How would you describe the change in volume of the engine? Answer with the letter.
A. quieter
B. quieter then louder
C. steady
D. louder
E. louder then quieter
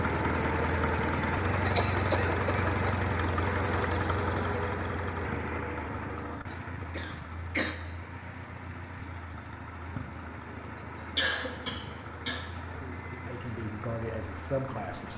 A.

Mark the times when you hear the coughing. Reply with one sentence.
You can hear the coughing from 1.6 to 3.0 s, from 6.5 to 7.8 s and from 11.2 to 12.6 s.